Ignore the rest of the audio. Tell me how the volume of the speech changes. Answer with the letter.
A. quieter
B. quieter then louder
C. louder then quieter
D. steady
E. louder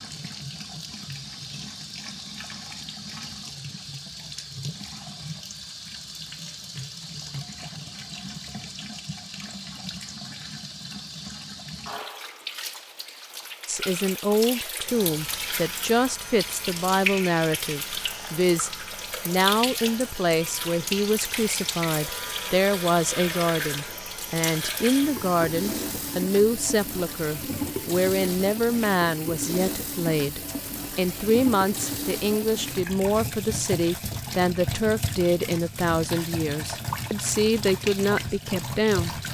D.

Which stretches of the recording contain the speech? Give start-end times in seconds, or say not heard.
13.7-39.2.